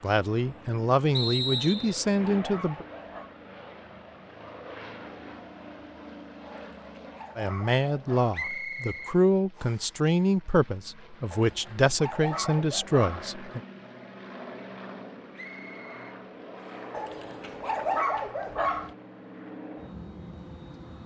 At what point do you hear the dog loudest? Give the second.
18 s.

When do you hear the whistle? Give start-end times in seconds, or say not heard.
1.1-2.0, 8.3-9.9, 15.3-16.9.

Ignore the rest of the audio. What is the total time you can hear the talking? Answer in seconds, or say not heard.
9 s.